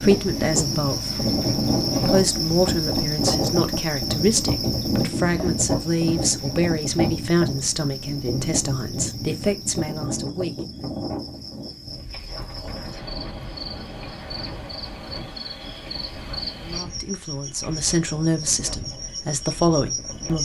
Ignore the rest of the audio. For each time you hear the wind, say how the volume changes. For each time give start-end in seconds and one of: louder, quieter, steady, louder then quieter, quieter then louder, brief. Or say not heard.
0.0-20.4 quieter.